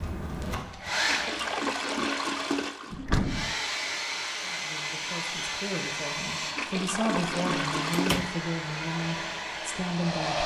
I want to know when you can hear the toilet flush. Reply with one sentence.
The toilet flush can be heard from 1.1 to 3.0 s and from 6.5 to 8.2 s.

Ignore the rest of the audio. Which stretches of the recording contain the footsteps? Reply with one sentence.
You can hear the footsteps from 0.0 to 1.6 s.